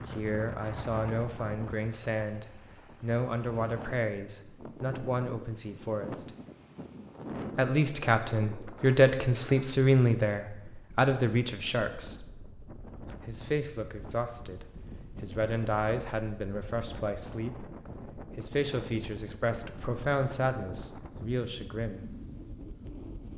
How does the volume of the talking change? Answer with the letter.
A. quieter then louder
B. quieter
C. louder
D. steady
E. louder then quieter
E.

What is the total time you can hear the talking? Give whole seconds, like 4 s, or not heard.
20 s.